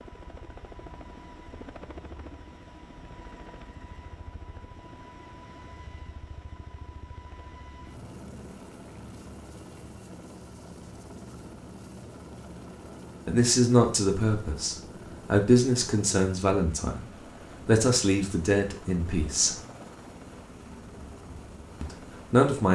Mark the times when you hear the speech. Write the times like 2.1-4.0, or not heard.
13.2-19.6, 21.8-22.6.